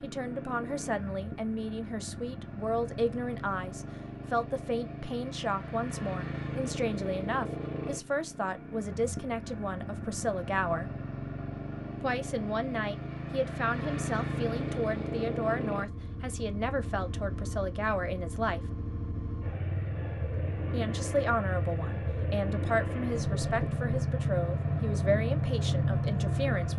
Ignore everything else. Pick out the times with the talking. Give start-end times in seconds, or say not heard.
0.0-10.9, 12.0-18.6, 20.7-26.7.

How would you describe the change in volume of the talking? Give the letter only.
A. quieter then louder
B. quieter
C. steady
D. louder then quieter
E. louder
C.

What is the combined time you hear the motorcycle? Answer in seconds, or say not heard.
27 s.